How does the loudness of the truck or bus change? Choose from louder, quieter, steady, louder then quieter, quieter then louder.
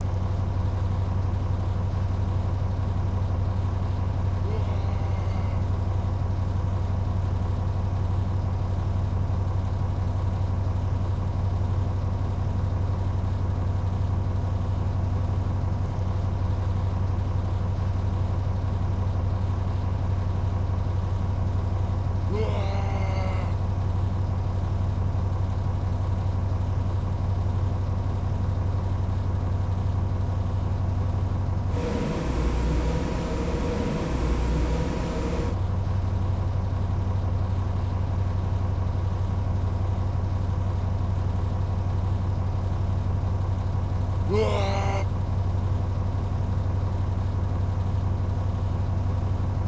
steady.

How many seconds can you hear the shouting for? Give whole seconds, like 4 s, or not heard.
3 s.